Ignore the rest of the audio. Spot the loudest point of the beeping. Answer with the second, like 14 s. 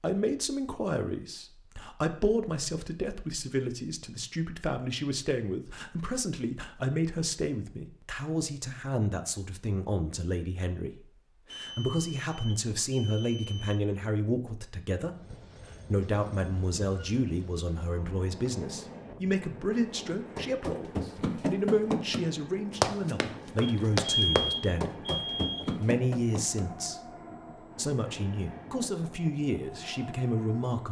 24 s.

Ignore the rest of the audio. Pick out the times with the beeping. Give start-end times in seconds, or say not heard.
11.4-13.8, 23.6-25.6.